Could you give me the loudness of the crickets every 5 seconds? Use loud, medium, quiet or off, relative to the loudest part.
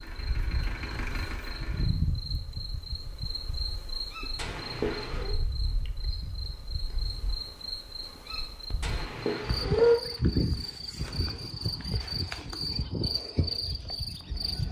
medium, medium, loud.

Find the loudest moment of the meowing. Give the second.
10 s.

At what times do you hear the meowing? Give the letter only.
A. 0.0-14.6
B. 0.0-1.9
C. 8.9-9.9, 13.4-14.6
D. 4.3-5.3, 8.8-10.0
D.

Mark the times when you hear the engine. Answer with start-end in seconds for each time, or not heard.
0.0-1.9.